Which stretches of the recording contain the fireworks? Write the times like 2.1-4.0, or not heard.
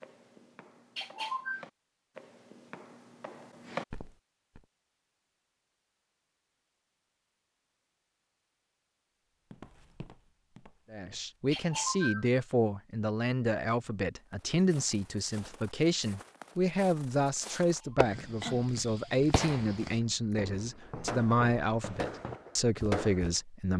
17.4-18.1, 19.3-23.2.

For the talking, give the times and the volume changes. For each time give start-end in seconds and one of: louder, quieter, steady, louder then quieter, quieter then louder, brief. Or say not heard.
10.9-23.7 steady.